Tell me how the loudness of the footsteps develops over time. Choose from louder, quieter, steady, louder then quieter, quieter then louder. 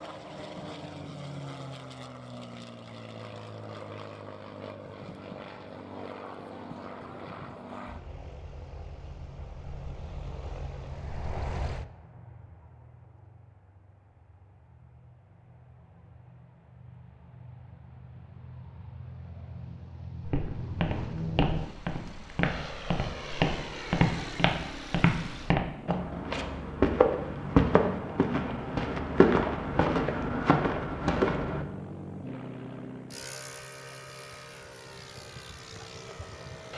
louder.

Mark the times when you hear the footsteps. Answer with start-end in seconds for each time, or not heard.
20.2-31.6.